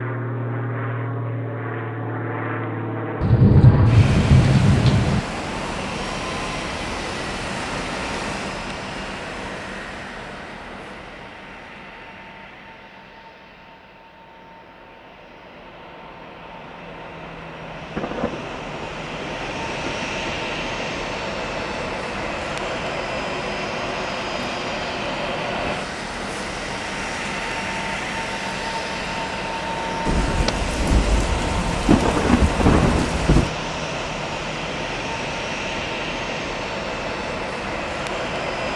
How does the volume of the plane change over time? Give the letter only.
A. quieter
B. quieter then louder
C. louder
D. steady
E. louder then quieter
B.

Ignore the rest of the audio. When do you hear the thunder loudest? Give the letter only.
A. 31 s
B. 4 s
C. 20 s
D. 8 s
B.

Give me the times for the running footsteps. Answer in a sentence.
You can't hear the running footsteps here.